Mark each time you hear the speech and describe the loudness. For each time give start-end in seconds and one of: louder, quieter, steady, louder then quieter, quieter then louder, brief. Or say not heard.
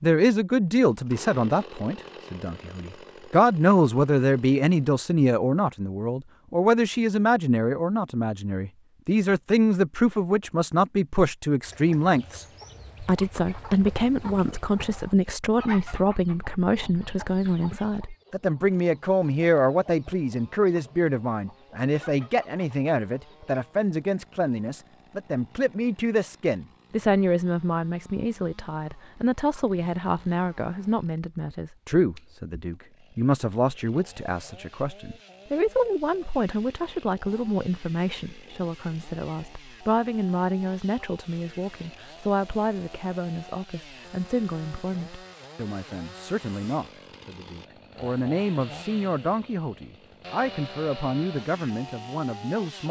0.0-52.8 quieter.